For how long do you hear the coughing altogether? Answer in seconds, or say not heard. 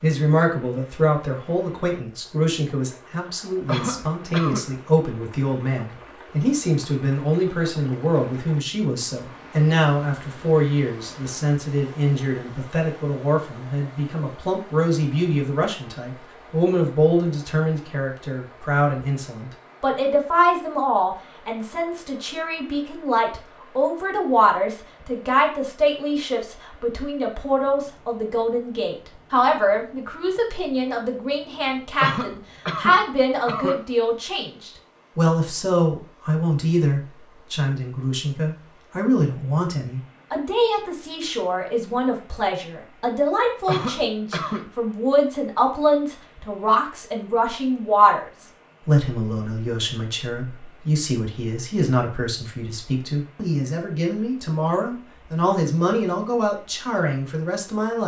4 s.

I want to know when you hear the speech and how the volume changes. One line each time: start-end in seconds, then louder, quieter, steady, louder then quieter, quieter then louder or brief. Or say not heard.
0.0-58.0 steady.